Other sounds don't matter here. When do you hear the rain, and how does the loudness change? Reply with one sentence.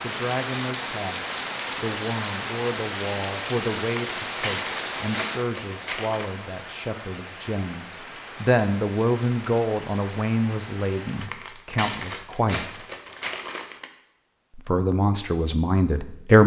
You can hear the rain from 0.0 to 11.3 s, getting quieter.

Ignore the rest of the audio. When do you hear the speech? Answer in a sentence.
You can hear the speech from 0.0 to 12.6 s and from 14.6 to 16.4 s.